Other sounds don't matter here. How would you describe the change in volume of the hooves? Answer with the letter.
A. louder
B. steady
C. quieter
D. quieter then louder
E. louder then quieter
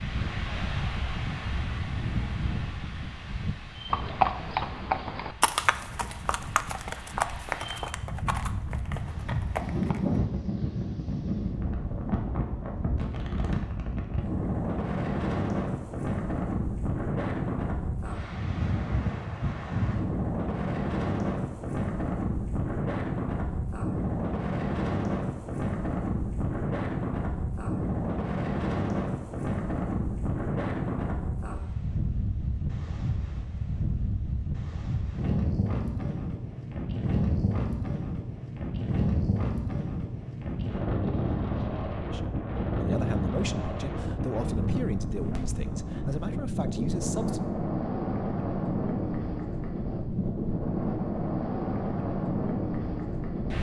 E.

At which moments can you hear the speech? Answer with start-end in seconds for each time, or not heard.
42.1-47.4.